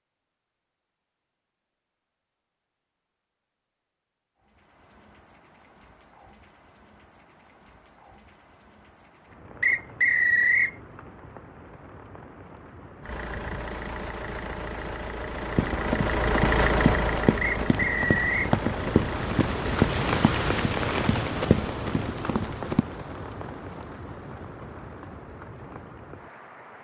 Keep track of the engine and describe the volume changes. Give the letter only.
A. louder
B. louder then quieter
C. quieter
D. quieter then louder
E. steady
B.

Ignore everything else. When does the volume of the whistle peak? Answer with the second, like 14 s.
10 s.